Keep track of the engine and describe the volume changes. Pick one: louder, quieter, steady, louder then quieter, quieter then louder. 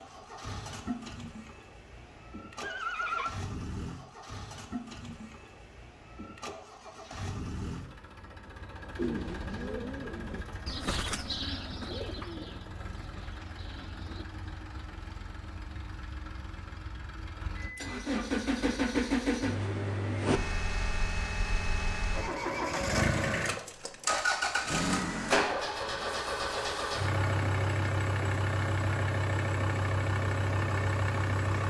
louder.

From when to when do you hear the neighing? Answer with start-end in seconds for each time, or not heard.
2.6-3.3.